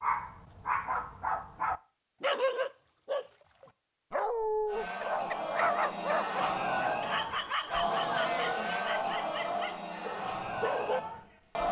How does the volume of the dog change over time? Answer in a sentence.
The volume of the dog goes down.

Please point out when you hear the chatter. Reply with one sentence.
The chatter can be heard from 4.7 to 11.6 s.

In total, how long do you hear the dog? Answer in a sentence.
You can hear the dog for 11 seconds altogether.